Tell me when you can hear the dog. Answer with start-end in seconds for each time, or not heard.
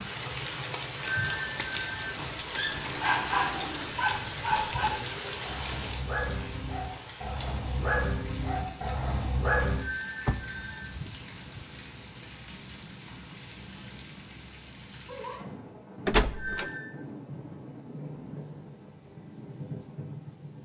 2.1-9.8.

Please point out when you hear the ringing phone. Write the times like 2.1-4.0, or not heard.
0.9-2.1, 9.8-10.9, 16.3-17.1.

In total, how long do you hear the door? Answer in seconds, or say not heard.
3 s.